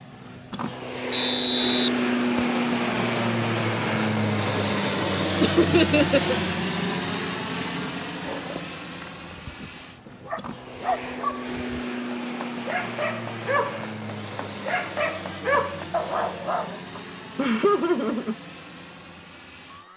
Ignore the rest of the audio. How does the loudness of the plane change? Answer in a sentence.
The loudness of the plane goes down.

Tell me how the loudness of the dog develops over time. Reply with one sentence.
The volume of the dog goes up.